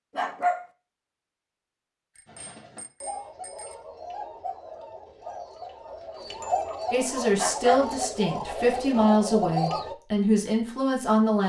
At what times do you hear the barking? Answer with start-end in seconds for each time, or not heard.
0.1-0.7, 7.3-7.8.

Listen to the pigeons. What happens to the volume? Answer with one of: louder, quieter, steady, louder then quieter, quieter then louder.
louder.